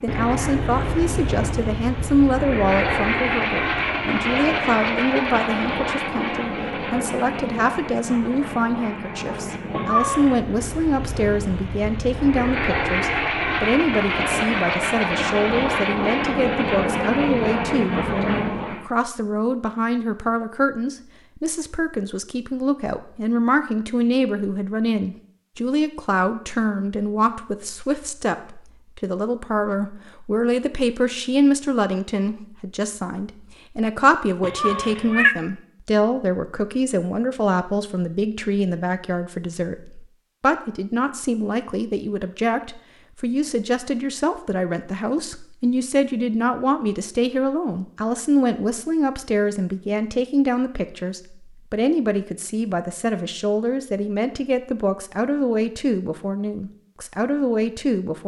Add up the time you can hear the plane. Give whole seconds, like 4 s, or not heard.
19 s.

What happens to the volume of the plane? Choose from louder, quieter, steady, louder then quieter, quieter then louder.
quieter then louder.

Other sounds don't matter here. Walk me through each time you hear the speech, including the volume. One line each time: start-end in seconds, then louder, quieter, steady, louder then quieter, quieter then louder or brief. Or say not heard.
0.0-58.2 steady.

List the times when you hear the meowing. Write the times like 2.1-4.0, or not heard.
9.7-10.4, 34.4-35.4.